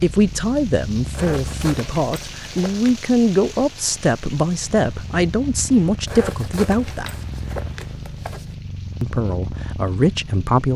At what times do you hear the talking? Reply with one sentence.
The talking can be heard from 0.0 to 7.2 s and from 9.0 to 10.7 s.